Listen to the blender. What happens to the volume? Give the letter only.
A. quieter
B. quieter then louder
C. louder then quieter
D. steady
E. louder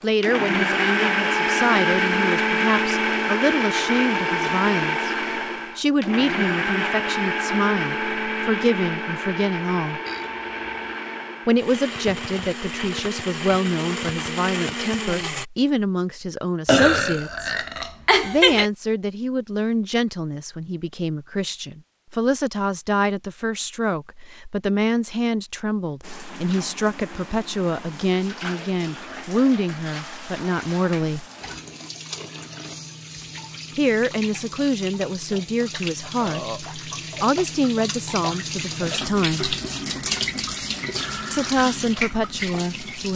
A.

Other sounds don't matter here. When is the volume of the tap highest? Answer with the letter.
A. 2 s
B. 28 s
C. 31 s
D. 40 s
D.